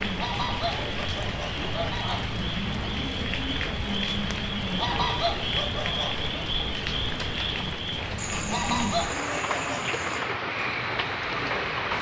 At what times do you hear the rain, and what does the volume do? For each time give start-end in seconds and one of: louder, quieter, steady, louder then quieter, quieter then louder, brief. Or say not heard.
0.0-11.9 steady.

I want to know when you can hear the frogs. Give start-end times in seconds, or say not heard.
0.1-11.9.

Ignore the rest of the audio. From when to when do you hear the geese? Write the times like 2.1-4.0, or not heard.
0.1-2.2, 4.8-6.3, 8.4-9.8.